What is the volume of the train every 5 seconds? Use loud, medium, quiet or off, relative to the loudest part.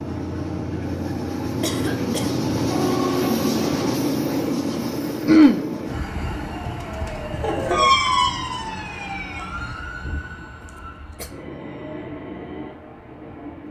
loud, medium, quiet.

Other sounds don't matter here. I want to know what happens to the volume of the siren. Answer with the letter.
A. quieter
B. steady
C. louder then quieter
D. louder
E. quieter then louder
C.